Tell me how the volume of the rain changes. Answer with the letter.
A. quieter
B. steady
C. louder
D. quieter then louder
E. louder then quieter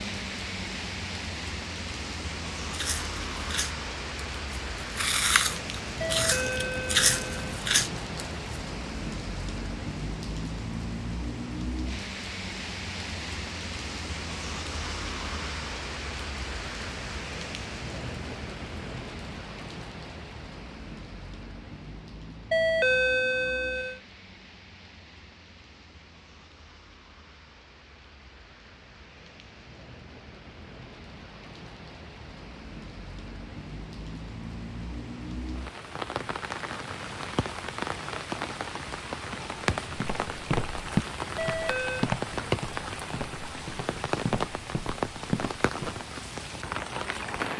D.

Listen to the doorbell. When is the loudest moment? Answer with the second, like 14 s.
23 s.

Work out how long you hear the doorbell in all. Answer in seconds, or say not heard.
4 s.